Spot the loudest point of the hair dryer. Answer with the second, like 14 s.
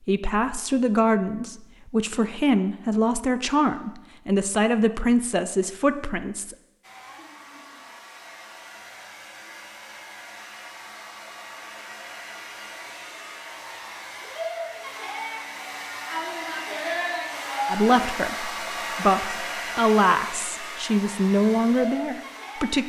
17 s.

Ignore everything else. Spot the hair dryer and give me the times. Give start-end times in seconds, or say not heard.
6.8-22.8.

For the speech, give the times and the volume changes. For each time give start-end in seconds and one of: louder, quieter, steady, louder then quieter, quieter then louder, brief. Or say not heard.
0.1-6.5 steady
17.6-22.8 louder.